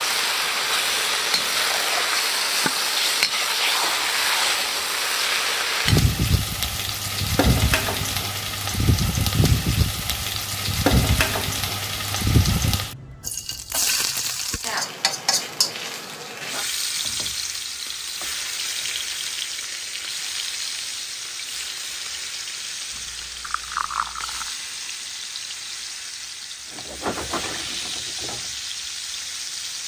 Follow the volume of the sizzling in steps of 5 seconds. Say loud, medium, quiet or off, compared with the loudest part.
loud, loud, loud, medium, medium, medium.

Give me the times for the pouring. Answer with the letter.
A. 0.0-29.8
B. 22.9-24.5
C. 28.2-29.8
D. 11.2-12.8
B.